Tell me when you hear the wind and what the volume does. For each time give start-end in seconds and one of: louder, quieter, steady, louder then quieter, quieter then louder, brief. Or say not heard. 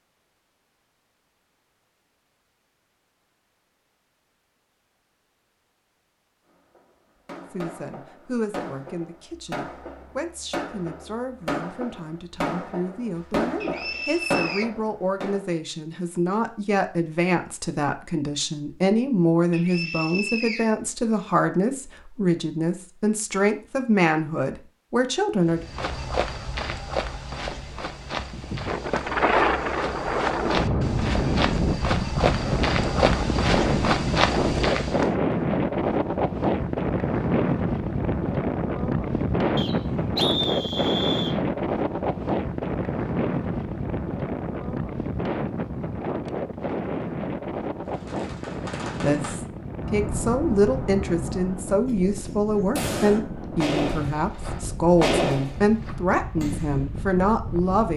28.1-57.9 quieter.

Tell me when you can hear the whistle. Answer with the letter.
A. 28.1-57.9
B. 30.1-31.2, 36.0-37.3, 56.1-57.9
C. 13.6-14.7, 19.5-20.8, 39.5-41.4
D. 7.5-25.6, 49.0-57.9
C.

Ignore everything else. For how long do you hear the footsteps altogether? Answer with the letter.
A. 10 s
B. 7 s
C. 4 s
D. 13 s
A.